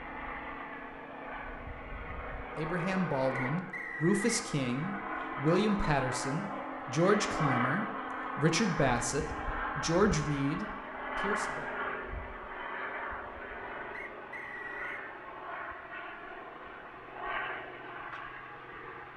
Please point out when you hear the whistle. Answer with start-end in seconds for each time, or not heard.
3.4-4.5, 13.9-15.1.